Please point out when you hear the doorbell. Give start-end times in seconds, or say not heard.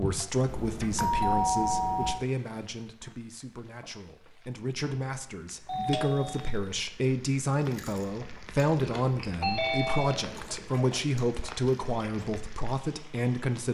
0.5-2.2, 5.7-6.6, 9.4-10.2.